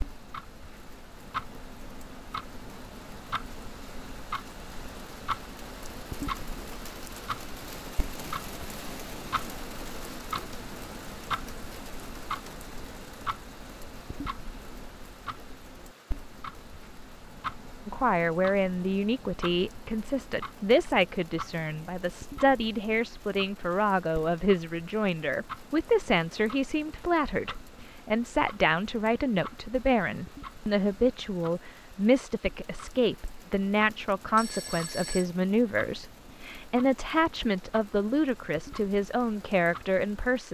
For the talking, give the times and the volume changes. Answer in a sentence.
You can hear the talking from 17.9 to 40.4 s, at a steady volume.